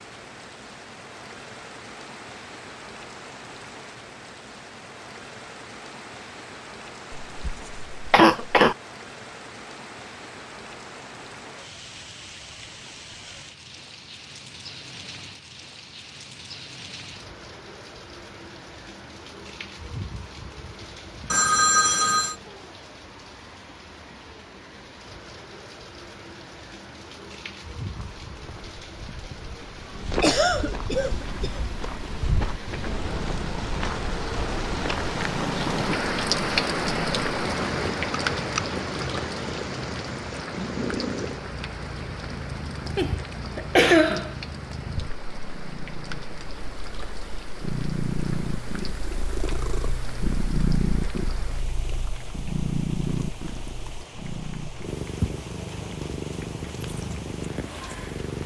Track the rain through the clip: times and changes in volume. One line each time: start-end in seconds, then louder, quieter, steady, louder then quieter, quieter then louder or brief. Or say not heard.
0.0-58.4 louder then quieter.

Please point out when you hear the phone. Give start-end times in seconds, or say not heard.
21.3-22.4.